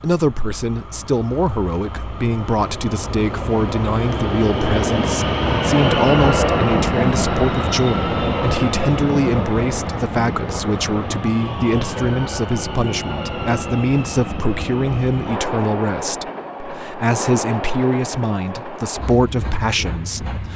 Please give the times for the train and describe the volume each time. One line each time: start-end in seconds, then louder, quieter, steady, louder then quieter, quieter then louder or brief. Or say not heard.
0.0-20.5 louder then quieter.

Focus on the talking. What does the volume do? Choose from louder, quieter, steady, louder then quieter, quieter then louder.
steady.